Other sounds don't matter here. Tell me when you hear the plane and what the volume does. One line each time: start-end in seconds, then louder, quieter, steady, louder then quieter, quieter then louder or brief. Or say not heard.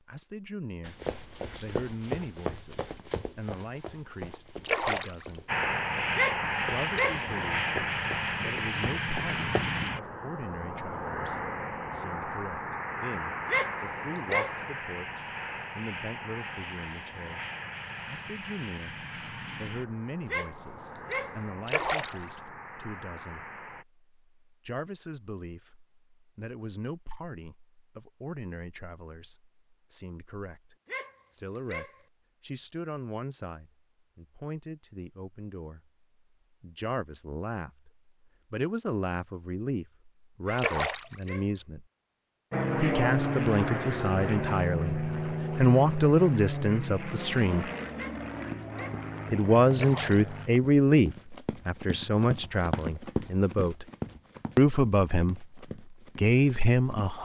5.5-23.9 quieter
42.5-50.5 quieter.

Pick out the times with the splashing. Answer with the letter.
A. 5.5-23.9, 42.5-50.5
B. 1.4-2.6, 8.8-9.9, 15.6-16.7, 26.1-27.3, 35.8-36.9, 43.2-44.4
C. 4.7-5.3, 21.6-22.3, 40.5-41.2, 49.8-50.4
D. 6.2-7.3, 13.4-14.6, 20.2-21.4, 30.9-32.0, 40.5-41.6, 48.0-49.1
C.